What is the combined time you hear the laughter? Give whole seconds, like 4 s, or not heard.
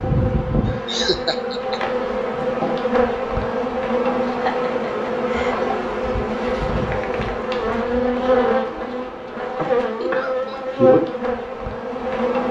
3 s.